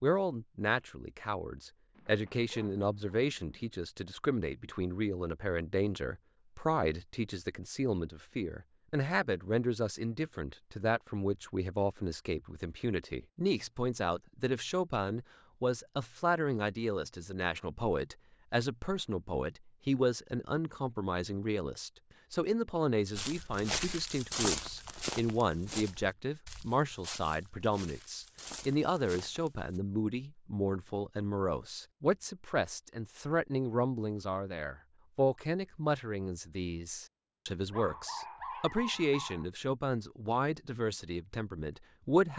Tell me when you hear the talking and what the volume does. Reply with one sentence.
You can hear the talking from 0.0 to 42.3 s, at a steady volume.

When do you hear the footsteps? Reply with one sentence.
The footsteps can be heard from 23.1 to 29.8 s.